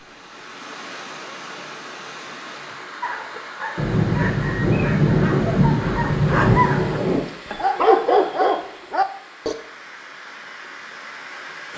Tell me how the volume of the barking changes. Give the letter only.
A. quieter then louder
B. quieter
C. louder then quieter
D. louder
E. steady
D.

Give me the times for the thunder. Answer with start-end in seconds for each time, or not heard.
3.8-7.2.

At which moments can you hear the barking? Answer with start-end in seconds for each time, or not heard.
3.0-9.6.